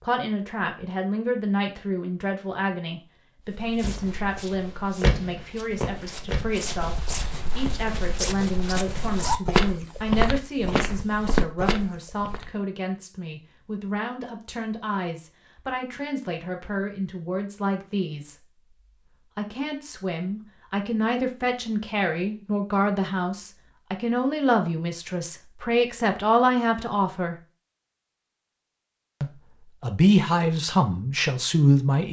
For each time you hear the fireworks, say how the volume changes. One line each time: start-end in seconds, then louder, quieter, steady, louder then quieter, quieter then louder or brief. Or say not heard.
3.8-7.8 louder then quieter.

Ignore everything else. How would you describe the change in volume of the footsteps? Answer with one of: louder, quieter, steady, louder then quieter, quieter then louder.
louder.